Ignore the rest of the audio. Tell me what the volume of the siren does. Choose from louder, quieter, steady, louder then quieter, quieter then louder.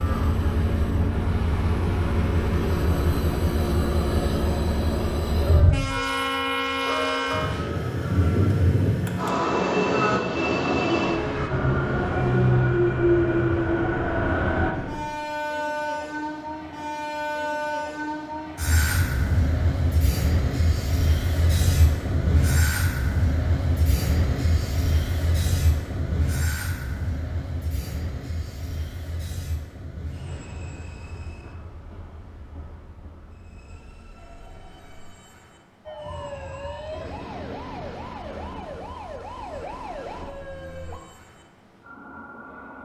steady.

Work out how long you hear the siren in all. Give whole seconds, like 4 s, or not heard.
5 s.